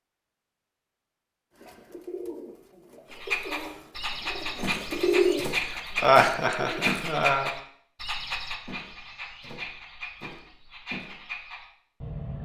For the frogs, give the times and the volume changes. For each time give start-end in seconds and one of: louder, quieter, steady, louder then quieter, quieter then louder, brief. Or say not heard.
3.1-12.4 quieter.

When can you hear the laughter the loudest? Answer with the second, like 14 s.
6 s.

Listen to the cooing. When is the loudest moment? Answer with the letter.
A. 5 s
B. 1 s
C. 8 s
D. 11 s
A.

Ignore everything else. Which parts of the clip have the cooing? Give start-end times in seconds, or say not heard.
1.6-6.8.